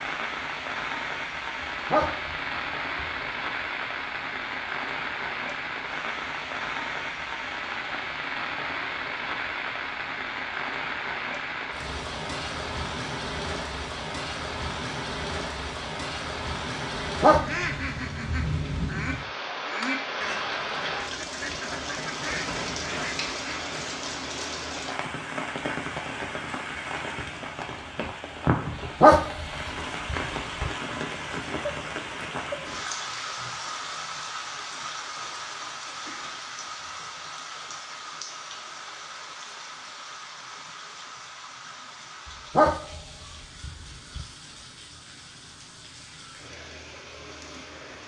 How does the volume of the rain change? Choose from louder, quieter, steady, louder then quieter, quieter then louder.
quieter.